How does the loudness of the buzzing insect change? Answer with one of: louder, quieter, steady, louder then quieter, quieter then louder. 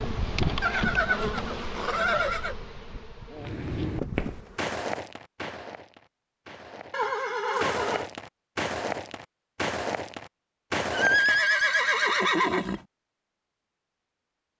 quieter then louder.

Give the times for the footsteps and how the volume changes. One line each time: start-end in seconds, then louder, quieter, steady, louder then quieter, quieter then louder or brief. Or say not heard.
3.4-11.4 quieter then louder.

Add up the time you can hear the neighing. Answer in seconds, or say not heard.
5 s.